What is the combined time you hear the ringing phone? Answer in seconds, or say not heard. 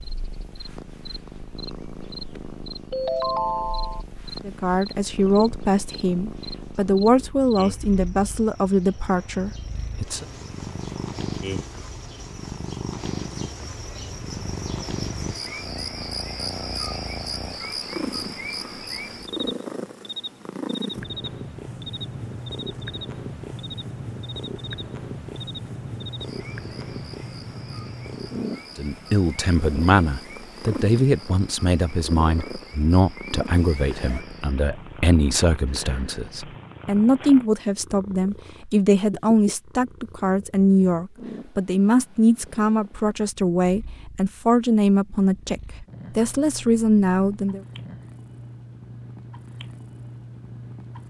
2 s.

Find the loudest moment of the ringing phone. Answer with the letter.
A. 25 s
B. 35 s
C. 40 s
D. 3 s
D.